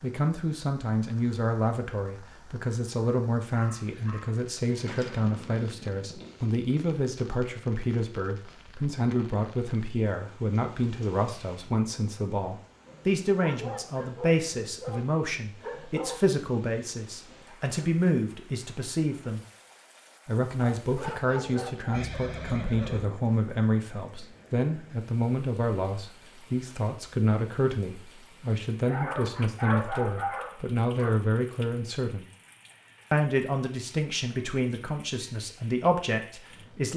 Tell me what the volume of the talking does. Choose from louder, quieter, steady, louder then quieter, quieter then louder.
steady.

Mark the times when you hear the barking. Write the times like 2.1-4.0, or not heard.
3.5-5.2, 13.4-16.2, 20.6-22.1, 28.9-31.2.